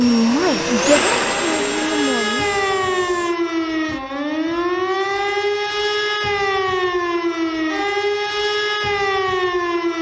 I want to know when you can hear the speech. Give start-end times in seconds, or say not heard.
0.0-2.5.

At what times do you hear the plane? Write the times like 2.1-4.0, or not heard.
0.0-3.4.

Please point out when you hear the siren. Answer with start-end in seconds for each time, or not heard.
0.0-9.9.